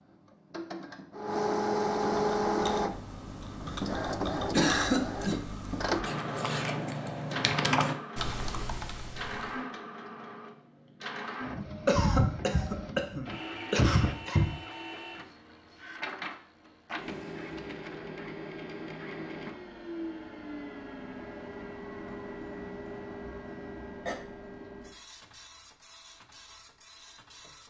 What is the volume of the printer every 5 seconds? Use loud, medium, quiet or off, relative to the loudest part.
loud, medium, medium, medium, medium, quiet.